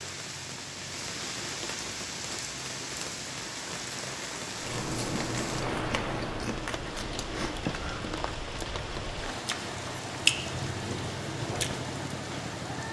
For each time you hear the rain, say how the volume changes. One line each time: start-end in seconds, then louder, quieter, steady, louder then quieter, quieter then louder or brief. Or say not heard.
0.0-12.8 steady.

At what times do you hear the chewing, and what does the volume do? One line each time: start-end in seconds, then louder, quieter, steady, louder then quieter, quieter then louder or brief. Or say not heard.
4.5-11.8 quieter then louder.